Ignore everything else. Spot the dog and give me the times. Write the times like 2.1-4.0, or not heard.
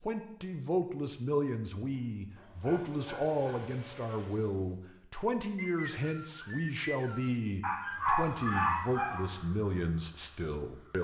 1.9-3.8, 7.6-9.2.